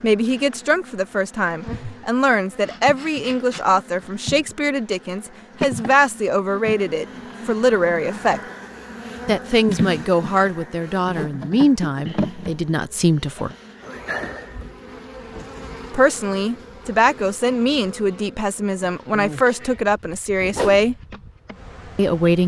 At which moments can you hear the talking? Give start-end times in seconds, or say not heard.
0.0-8.4, 9.2-13.6, 15.9-20.9, 21.9-22.4.